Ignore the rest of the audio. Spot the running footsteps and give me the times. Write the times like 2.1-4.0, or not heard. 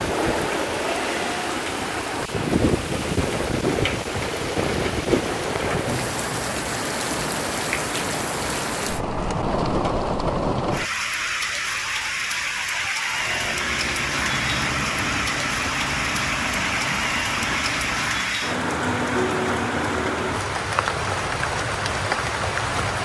not heard.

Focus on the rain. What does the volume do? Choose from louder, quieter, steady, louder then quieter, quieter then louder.
steady.